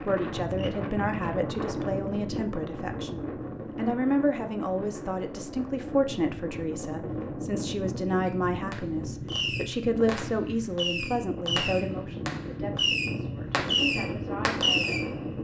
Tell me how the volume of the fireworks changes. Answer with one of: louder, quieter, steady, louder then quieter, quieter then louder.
louder.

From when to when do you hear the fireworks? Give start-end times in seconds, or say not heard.
8.2-15.3.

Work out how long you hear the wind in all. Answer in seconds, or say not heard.
15 s.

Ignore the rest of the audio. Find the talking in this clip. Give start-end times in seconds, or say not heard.
0.0-15.1.